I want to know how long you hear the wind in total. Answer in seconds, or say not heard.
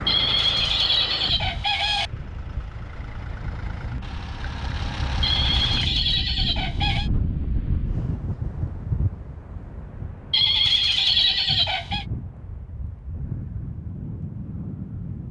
15 s.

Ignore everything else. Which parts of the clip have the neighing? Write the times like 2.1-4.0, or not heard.
0.1-2.1, 5.2-7.1, 10.3-12.1.